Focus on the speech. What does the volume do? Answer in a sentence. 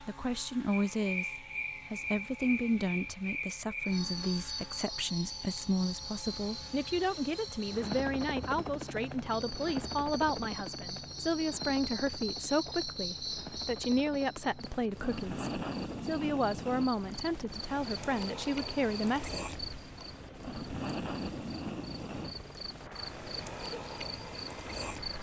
The volume of the speech stays about the same.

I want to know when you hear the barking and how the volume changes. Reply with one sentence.
The barking can't be heard in this clip.